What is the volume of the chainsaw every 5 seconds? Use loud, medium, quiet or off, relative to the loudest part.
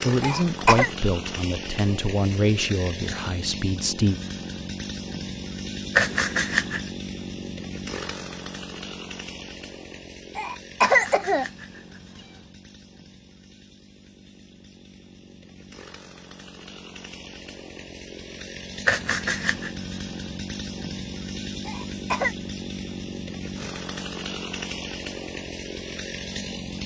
loud, loud, quiet, medium, loud, loud.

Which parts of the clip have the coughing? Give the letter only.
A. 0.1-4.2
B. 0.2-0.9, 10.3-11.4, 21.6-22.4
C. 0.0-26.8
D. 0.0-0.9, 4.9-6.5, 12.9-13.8
B.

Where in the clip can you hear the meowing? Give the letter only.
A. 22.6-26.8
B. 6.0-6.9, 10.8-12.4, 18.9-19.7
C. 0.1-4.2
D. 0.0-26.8
B.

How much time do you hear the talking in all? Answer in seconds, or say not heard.
4 s.